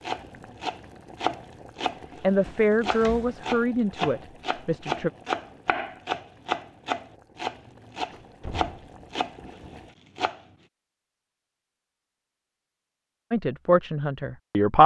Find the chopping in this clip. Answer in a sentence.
The chopping can be heard from 0.0 to 10.4 s.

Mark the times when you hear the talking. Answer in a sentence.
You can hear the talking from 2.2 to 5.1 s and from 13.3 to 14.8 s.